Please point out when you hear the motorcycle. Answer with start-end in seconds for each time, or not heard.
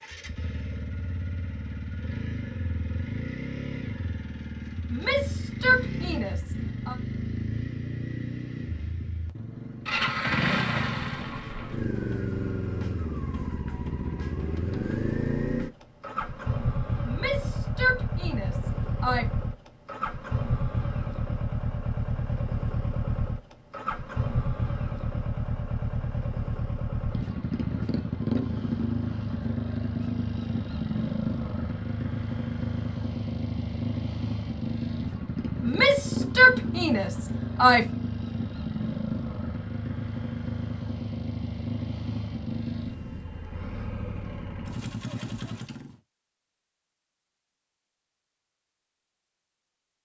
0.0-46.0.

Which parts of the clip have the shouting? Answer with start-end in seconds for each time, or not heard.
4.9-7.0, 17.1-19.2, 35.6-37.9.